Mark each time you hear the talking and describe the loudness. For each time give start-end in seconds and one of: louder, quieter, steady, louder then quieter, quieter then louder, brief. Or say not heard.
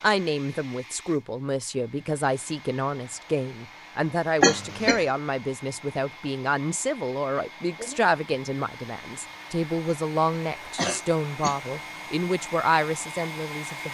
0.0-13.8 steady.